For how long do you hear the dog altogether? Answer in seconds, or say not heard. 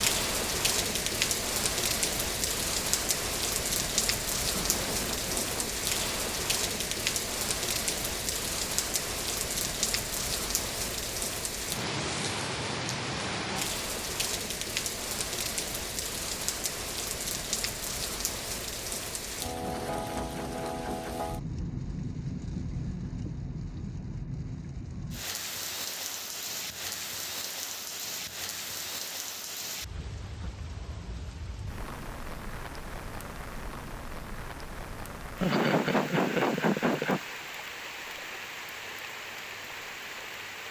not heard.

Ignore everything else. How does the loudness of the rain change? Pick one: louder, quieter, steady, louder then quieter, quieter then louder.
quieter.